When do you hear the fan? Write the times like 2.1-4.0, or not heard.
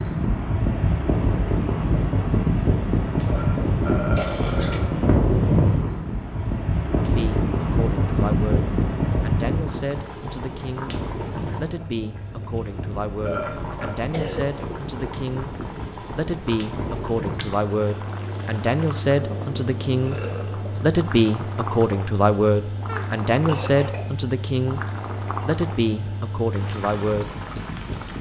0.0-28.1.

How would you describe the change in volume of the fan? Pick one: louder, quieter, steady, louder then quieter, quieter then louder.
quieter.